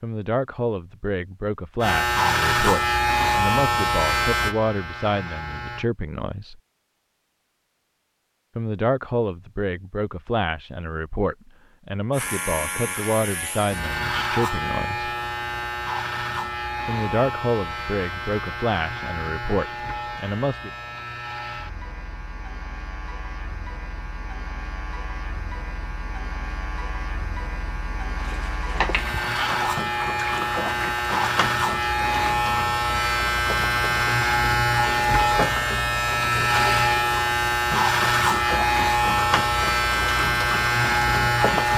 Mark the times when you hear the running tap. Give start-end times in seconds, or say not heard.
28.2-41.7.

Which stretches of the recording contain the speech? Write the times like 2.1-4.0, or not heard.
0.0-6.6, 8.6-15.1, 16.9-20.7.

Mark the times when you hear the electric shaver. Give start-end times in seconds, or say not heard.
1.8-5.9, 12.1-41.7.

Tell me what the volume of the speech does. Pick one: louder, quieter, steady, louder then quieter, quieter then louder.
steady.